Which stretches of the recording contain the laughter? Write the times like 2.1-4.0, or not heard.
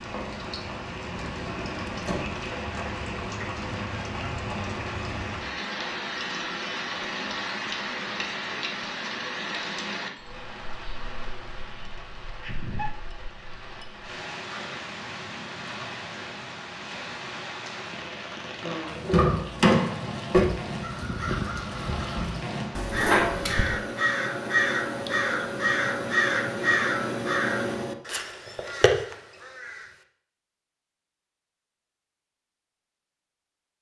12.4-13.0.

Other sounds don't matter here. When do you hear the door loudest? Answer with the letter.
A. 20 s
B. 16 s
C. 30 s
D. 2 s
A.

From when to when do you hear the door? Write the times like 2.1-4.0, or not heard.
1.3-2.3, 19.0-20.4.